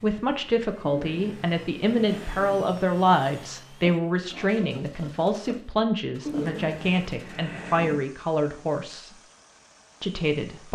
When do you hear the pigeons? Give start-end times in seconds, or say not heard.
0.8-2.5, 6.2-8.0.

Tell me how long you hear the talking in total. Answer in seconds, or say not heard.
10 s.